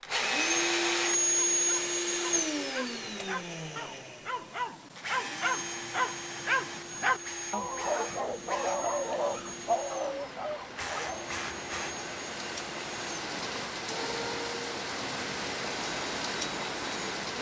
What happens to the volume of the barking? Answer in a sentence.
The volume of the barking goes up.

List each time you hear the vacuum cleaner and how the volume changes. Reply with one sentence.
The vacuum cleaner can be heard from 0.0 to 17.3 s, getting quieter.